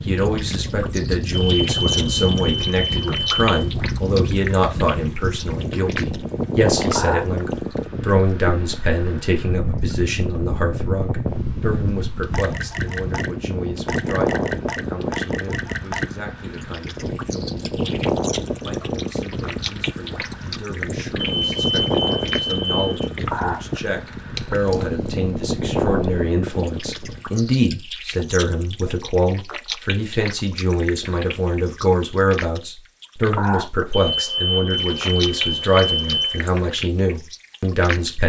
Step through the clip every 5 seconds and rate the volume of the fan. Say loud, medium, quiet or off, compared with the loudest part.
loud, loud, loud, loud, loud, loud, off, off.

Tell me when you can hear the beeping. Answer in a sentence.
The beeping can be heard from 1.4 to 3.5 s, from 21.1 to 23.1 s and from 33.9 to 36.4 s.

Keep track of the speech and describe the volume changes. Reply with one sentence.
The volume of the speech goes down, then up.